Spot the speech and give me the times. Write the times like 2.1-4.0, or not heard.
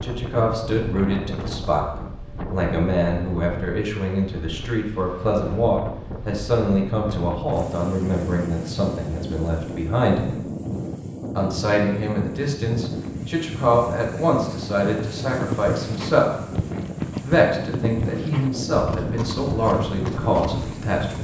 0.0-10.4, 11.3-16.3, 17.2-21.1.